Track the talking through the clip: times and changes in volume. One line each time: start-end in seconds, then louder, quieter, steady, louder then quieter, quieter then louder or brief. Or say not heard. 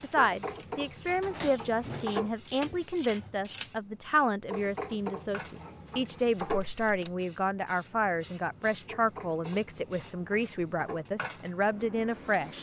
0.0-12.5 steady.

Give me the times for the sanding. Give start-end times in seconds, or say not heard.
0.1-2.3, 4.5-6.6, 8.8-11.1.